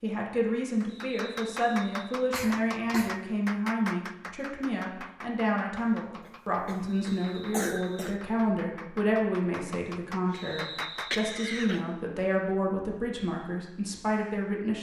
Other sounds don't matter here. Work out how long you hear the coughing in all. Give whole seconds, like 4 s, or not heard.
4 s.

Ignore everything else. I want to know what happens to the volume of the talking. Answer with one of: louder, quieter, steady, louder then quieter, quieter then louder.
steady.